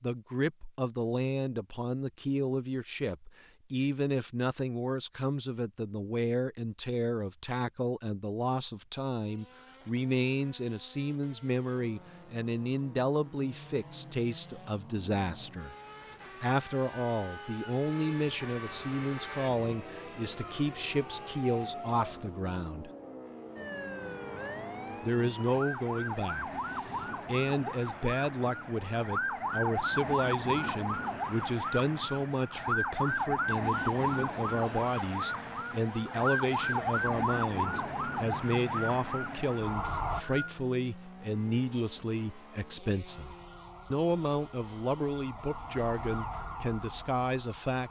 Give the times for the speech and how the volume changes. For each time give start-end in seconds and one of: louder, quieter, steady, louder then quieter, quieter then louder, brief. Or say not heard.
0.0-15.8 steady
16.4-22.9 steady
25.0-47.8 steady.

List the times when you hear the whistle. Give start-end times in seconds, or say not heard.
39.8-40.5.